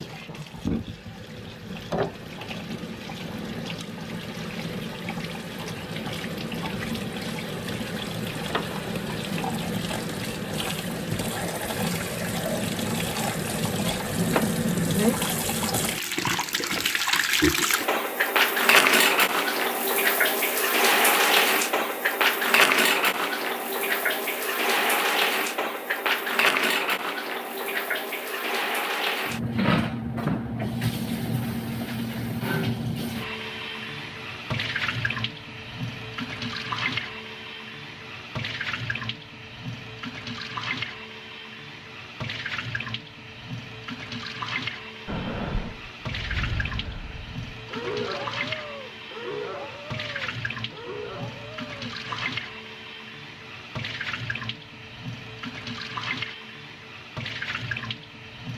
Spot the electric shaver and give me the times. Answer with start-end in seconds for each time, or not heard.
not heard.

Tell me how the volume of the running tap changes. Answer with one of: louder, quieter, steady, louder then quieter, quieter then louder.
louder then quieter.